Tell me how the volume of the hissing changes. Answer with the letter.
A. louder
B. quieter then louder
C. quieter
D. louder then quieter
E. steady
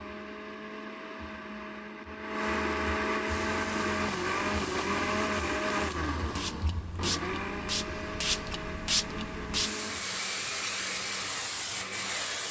A.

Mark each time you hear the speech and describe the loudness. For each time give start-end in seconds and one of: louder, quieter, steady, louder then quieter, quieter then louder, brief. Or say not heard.
not heard.